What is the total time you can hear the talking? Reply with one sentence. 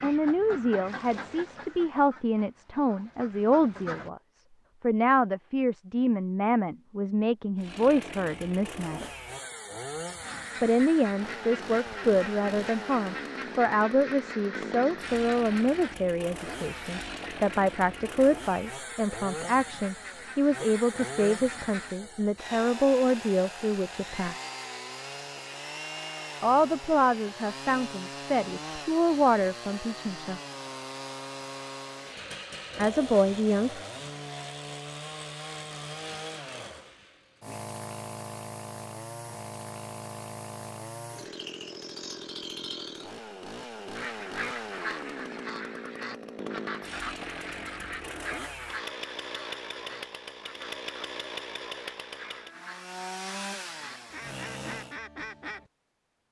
The talking can be heard for 28 seconds in total.